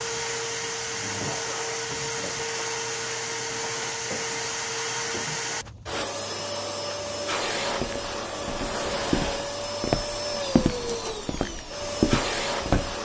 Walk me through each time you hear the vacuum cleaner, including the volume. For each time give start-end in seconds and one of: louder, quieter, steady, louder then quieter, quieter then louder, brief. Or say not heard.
0.0-13.0 steady.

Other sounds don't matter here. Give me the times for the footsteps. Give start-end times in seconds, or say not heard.
7.6-12.9.